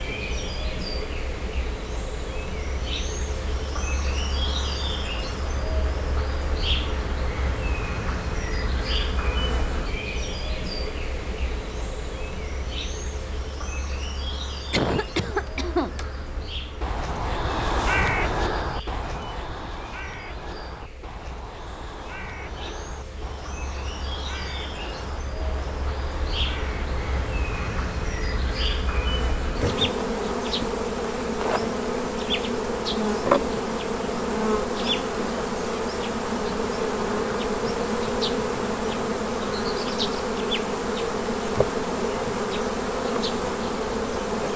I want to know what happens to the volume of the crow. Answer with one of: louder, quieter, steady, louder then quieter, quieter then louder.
quieter.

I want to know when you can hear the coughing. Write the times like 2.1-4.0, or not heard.
14.7-15.9.